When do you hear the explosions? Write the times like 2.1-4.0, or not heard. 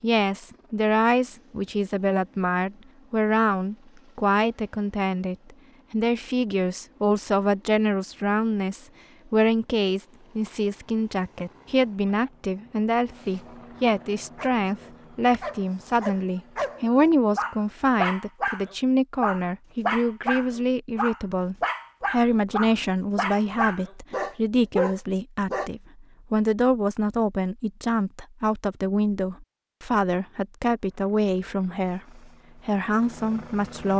not heard.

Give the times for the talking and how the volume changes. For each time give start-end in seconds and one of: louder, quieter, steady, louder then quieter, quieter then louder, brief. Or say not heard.
0.0-33.9 steady.